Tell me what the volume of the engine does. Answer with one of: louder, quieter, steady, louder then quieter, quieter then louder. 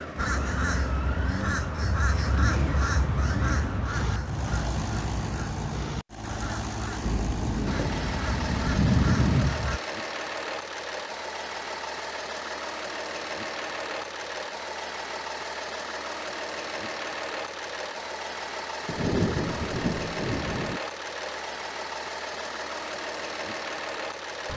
steady.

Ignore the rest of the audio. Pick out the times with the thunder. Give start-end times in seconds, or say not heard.
7.0-9.6, 18.9-20.8.